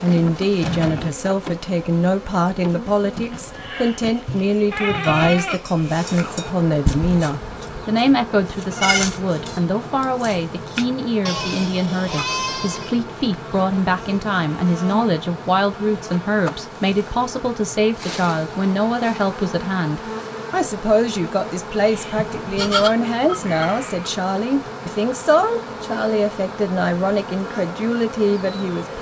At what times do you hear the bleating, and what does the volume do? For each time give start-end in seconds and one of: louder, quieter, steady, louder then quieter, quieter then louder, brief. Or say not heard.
3.5-13.0 quieter then louder
21.8-24.1 brief.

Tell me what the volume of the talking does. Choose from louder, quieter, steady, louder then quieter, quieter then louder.
steady.